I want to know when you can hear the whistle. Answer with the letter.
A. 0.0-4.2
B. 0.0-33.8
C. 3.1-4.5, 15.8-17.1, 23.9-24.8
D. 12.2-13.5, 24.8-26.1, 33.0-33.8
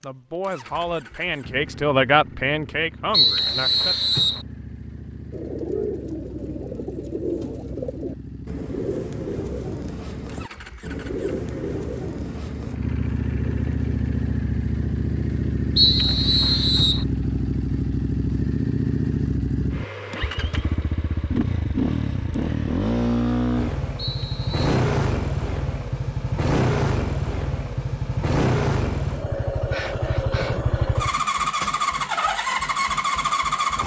C.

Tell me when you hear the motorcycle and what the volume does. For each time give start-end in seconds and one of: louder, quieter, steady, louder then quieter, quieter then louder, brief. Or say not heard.
0.0-33.8 louder.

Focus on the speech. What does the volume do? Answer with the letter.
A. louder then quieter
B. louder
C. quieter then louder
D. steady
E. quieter
A.